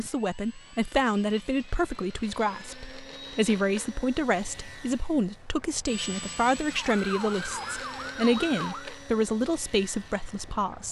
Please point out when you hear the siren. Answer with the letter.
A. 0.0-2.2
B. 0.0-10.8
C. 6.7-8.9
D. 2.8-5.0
C.